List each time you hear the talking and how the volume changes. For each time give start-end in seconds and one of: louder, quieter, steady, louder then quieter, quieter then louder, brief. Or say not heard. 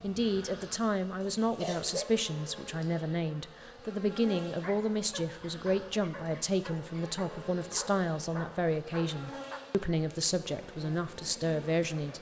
0.0-12.1 steady.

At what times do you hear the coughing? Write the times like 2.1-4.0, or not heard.
1.2-2.1.